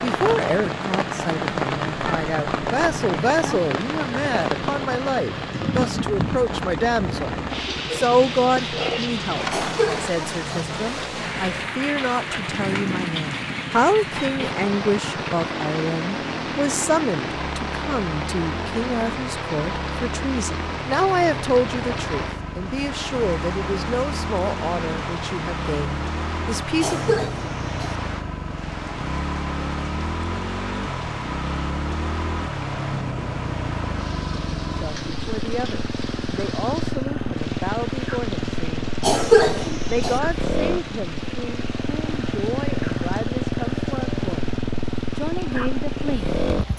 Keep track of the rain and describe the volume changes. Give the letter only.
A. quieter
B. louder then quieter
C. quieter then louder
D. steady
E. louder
A.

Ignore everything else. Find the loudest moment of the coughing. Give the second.
39 s.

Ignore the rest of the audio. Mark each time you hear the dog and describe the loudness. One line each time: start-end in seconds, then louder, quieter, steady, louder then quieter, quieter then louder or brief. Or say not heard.
not heard.